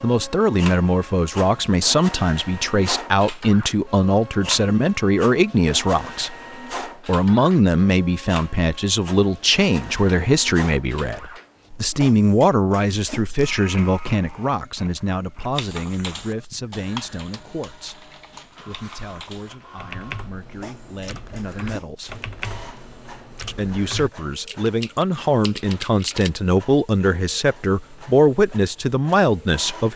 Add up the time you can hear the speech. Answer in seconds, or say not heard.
28 s.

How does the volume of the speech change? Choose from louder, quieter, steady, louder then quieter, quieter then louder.
quieter then louder.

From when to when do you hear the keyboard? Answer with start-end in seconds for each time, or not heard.
15.6-26.3.